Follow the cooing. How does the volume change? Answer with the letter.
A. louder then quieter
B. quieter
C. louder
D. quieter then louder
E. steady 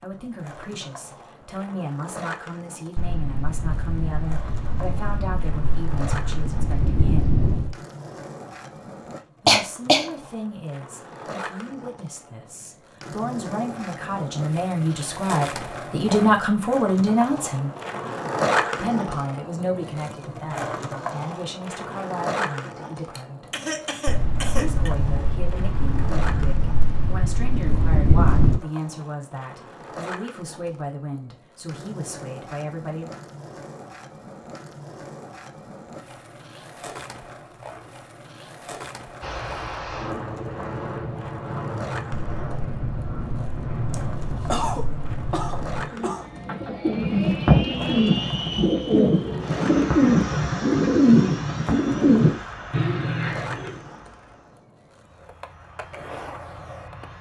E.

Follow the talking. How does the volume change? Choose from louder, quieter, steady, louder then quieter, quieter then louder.
louder then quieter.